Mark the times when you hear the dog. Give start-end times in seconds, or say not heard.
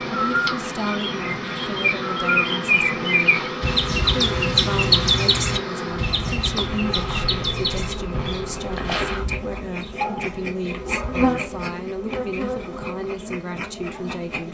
10.0-11.3.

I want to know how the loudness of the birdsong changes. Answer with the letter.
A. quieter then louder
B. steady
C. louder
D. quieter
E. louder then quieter
E.